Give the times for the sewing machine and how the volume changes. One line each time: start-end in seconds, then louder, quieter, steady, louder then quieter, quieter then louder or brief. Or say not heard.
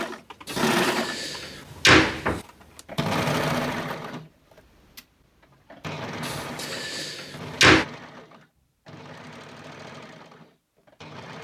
0.0-11.4 quieter.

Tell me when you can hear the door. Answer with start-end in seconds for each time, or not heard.
0.5-2.4, 6.2-7.8.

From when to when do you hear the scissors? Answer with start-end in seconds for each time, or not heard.
not heard.